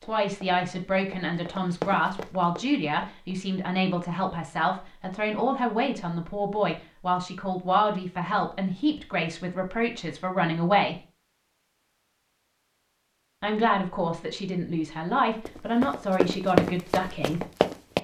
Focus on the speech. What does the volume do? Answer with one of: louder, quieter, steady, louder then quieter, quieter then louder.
steady.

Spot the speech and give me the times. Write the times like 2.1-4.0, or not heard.
0.0-10.9, 13.4-17.4.